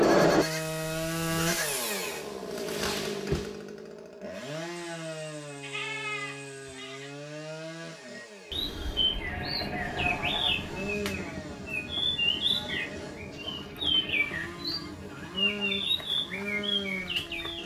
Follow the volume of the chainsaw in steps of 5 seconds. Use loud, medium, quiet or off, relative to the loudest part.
loud, quiet, quiet, medium.